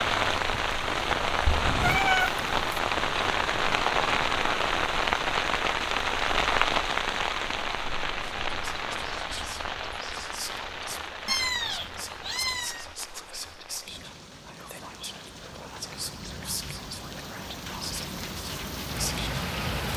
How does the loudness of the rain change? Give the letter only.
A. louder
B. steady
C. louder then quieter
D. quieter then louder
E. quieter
D.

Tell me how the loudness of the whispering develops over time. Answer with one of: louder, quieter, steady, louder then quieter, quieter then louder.
steady.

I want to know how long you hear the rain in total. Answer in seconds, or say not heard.
20 s.